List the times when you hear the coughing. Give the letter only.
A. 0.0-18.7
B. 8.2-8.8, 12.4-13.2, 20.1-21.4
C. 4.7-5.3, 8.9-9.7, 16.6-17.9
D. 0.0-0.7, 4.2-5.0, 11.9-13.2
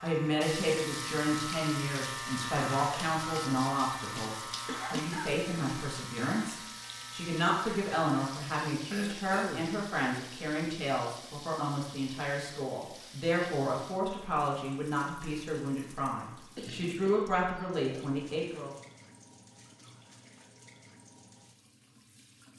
C.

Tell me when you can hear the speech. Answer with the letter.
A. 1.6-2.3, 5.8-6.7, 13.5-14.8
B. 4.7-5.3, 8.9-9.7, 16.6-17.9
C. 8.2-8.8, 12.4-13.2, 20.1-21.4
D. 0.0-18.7
D.